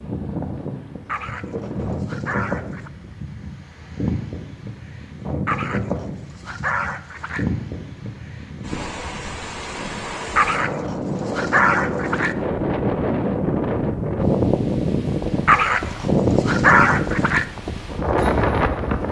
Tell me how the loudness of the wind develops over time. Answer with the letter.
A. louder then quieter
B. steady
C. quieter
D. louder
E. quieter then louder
D.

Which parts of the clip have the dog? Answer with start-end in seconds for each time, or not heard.
1.1-2.9, 5.5-7.5, 10.3-12.3, 15.4-17.4.